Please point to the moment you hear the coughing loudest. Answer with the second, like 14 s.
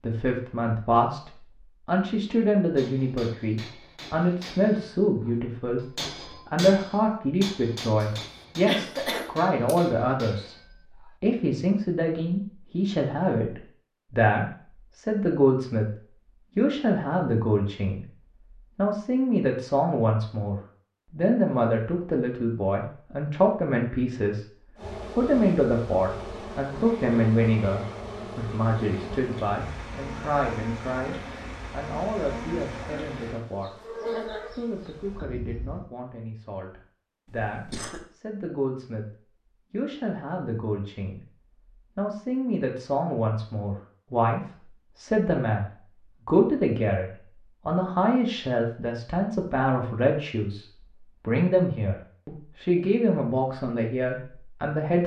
9 s.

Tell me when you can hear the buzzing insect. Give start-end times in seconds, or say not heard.
24.8-35.9.